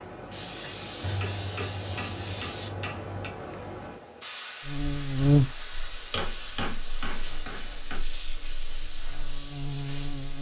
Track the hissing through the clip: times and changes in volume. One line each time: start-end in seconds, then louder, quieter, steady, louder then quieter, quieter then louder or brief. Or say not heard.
0.0-10.3 steady.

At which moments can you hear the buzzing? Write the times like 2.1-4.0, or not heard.
4.7-10.3.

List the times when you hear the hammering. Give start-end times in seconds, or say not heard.
1.0-3.4, 6.1-8.0.